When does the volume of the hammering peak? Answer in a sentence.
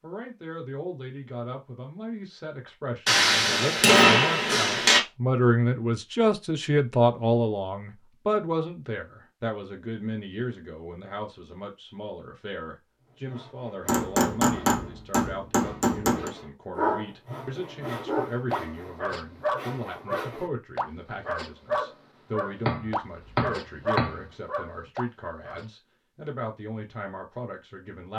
The volume of the hammering peaks at 4 seconds.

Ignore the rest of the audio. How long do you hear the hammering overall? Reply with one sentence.
You can hear the hammering for 6 seconds altogether.